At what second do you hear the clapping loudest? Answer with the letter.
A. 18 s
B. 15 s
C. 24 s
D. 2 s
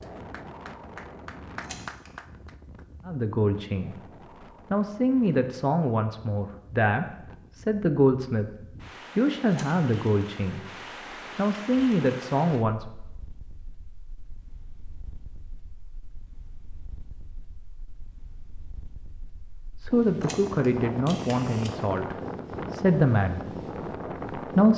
D.